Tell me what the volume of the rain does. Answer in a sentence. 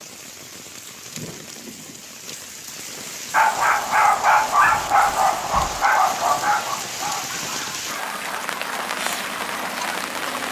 The volume of the rain goes up.